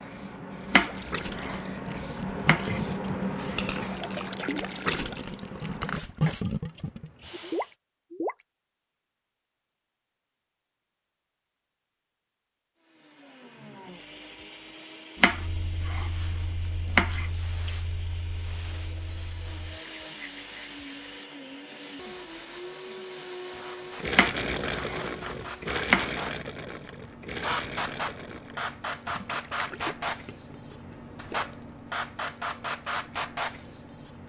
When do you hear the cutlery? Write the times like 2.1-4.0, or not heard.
not heard.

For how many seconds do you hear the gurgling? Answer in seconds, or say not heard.
16 s.